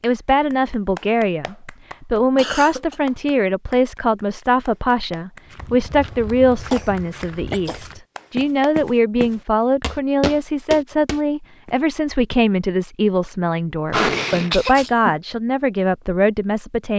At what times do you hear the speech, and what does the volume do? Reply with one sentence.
The speech can be heard from 0.0 to 16.9 s, at a steady volume.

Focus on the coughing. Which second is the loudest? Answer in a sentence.
The volume of the coughing peaks at 14 seconds.